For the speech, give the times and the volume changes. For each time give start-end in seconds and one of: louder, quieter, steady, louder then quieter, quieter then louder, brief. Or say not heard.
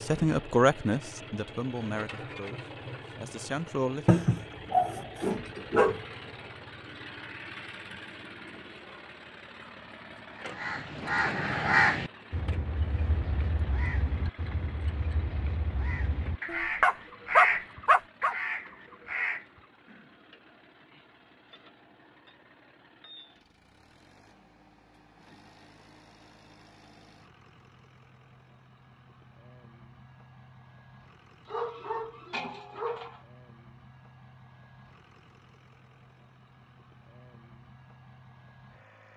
0.0-4.2 quieter then louder.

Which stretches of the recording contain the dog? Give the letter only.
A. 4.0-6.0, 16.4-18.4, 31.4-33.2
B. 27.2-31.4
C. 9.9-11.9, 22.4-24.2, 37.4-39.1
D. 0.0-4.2
A.